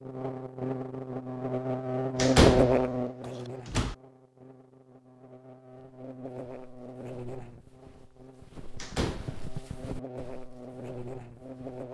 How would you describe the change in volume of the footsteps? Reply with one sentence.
The loudness of the footsteps goes up, then down.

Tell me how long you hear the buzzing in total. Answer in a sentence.
You can hear the buzzing for 12 seconds altogether.